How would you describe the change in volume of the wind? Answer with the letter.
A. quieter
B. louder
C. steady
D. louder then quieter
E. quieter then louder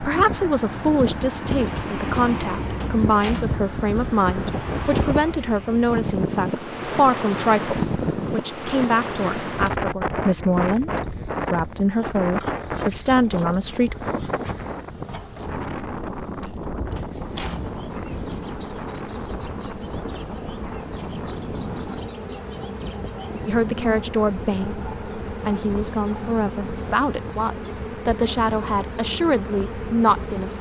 A.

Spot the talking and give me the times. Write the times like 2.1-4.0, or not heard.
0.0-13.9, 23.4-30.5.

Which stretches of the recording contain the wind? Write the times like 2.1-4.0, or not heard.
0.0-30.5.